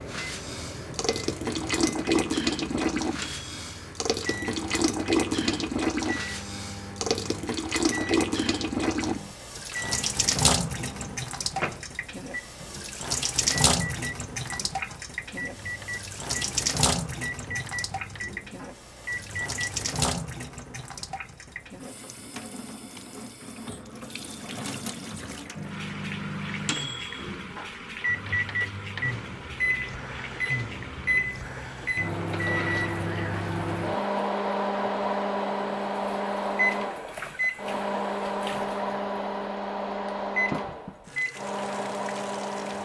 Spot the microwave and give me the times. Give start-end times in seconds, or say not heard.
0.0-19.9, 25.6-42.7.